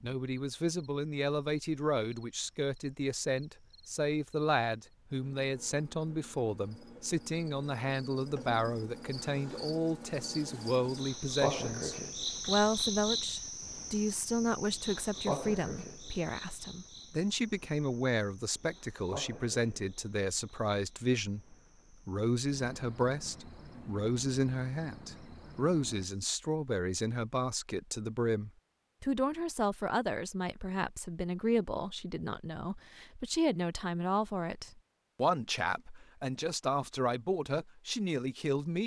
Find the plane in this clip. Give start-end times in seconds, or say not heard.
not heard.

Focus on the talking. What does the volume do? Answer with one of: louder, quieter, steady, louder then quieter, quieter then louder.
steady.